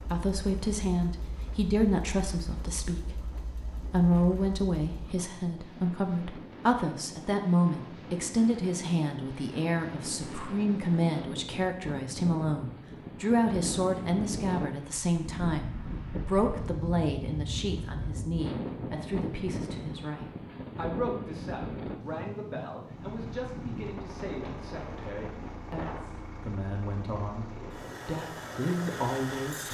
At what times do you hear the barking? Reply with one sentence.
The barking can't be heard in this clip.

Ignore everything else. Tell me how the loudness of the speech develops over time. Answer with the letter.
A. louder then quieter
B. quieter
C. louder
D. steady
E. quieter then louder
B.